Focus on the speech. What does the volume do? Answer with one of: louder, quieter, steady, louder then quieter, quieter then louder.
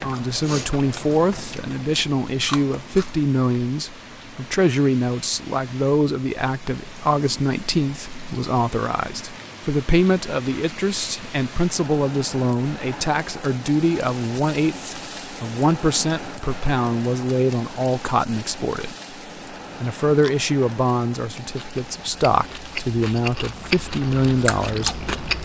steady.